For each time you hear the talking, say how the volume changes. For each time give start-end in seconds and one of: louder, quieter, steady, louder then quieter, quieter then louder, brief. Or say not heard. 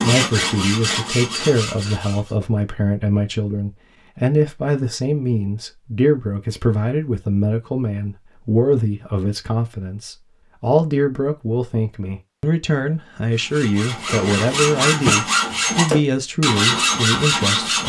0.0-17.8 steady.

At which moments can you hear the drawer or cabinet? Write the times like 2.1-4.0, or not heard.
14.1-15.2.